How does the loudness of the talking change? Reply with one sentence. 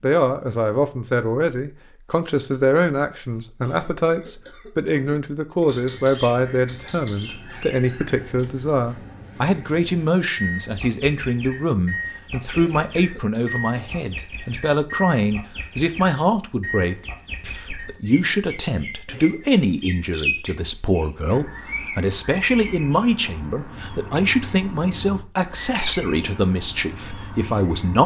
The loudness of the talking stays about the same.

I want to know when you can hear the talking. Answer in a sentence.
The talking can be heard from 0.0 to 28.0 s.